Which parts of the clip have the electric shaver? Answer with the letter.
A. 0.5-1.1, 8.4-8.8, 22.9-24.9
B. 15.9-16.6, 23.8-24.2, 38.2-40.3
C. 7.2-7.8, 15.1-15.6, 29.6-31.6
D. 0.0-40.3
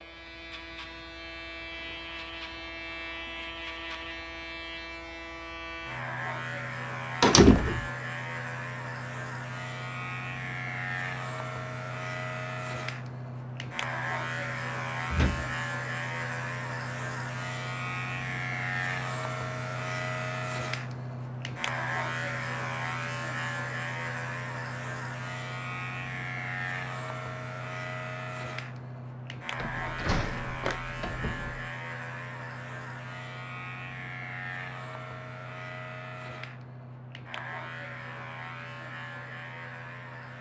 D.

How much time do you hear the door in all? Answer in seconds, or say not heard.
3 s.